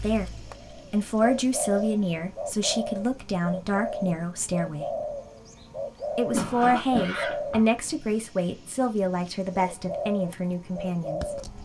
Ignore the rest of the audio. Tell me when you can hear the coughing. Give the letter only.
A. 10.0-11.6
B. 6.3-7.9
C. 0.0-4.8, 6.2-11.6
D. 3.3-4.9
B.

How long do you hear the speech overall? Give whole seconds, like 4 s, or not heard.
10 s.